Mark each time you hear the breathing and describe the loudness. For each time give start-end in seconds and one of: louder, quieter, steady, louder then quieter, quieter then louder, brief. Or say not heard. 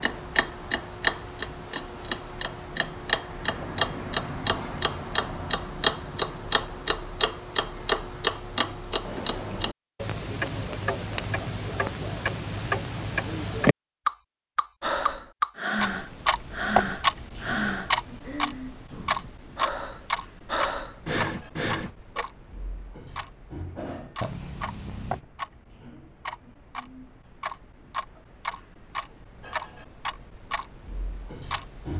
14.8-22.2 quieter then louder.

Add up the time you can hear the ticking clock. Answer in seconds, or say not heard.
32 s.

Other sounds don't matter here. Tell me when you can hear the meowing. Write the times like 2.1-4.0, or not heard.
24.2-25.2.